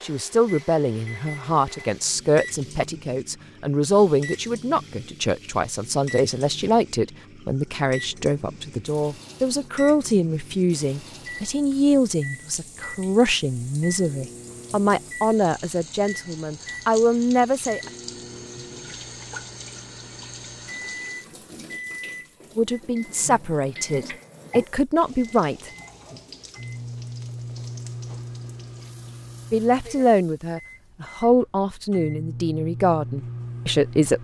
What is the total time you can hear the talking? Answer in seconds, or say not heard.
26 s.